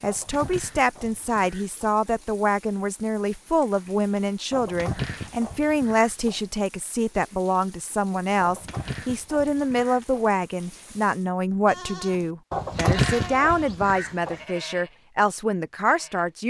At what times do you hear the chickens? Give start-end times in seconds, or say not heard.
0.1-1.9, 4.5-6.4, 8.4-10.3, 12.5-14.4.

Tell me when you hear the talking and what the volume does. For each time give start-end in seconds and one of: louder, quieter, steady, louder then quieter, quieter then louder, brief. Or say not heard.
0.0-16.4 steady.